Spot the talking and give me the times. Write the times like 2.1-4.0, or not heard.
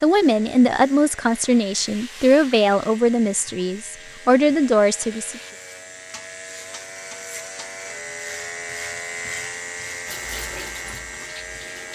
0.0-5.4.